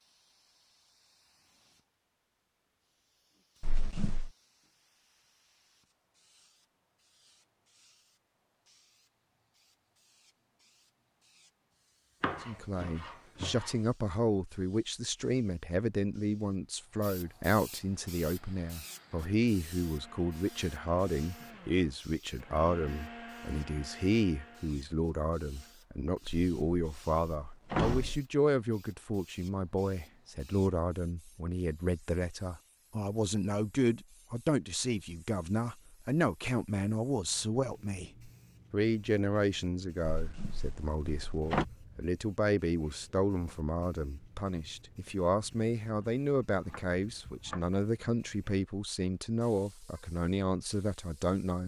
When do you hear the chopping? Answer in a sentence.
You can hear the chopping from 12.2 to 13.8 s and from 46.0 to 47.6 s.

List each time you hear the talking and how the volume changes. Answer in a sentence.
You can hear the talking from 12.4 to 51.6 s, at a steady volume.